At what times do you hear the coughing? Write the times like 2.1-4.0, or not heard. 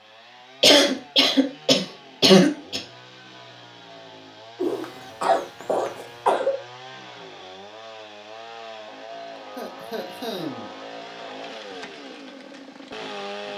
0.6-2.8, 4.6-6.5, 9.6-10.7.